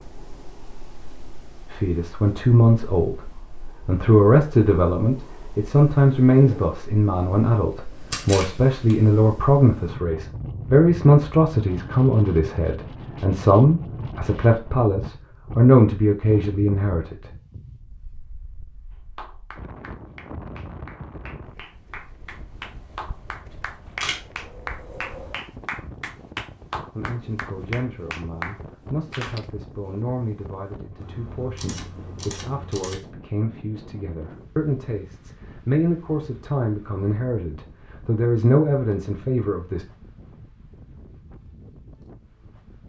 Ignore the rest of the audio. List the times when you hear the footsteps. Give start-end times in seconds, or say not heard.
not heard.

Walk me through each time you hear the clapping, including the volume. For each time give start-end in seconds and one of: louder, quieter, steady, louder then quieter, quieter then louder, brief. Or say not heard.
19.1-29.5 louder.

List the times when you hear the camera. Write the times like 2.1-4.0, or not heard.
8.1-8.9, 23.5-24.2, 30.9-33.0.